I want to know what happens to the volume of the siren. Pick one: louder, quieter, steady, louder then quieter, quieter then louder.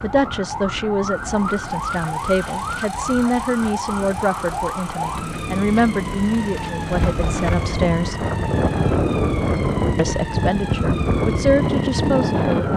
steady.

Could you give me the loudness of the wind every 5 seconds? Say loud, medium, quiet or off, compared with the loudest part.
quiet, loud, loud.